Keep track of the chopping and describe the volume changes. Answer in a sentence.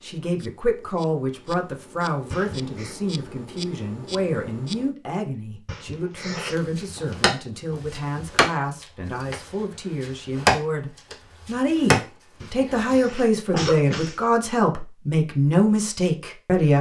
The loudness of the chopping goes up, then down.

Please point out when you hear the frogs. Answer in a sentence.
The frogs can't be heard in this clip.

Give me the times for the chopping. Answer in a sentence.
You can hear the chopping from 6.5 to 13.7 s.